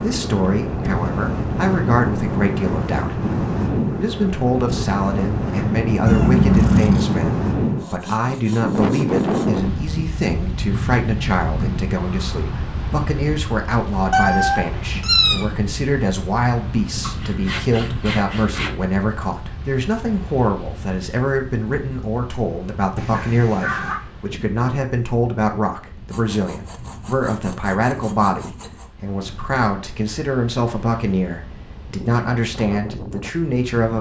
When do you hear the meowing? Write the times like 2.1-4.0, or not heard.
6.0-7.2, 14.1-15.4, 22.9-24.0.